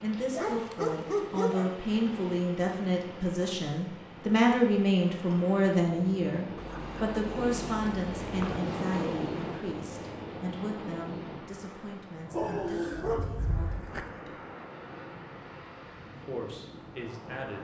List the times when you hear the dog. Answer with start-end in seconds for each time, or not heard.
0.3-1.8, 6.5-8.6, 12.3-14.1.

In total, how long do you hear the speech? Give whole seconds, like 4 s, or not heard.
16 s.